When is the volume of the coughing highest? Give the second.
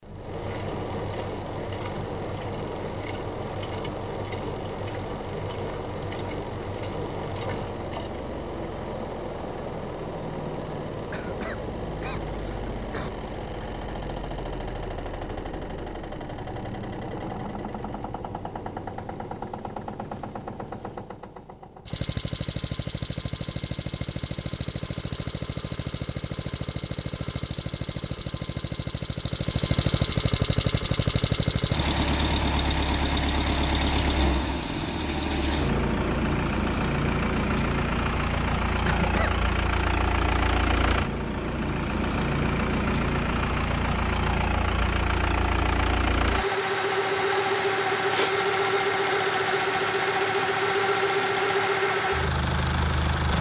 39 s.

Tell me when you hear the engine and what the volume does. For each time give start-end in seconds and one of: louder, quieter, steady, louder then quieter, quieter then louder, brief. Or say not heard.
0.0-53.3 louder.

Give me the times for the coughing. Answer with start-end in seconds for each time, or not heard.
11.1-13.1, 38.9-39.4.